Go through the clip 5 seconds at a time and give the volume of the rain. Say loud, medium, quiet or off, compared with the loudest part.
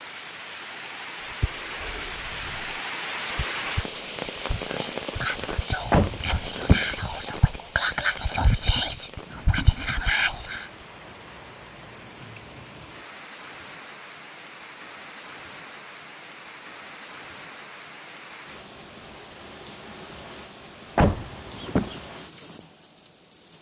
loud, medium, medium, medium, medium.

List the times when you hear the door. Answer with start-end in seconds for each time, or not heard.
5.9-6.9, 20.9-22.0.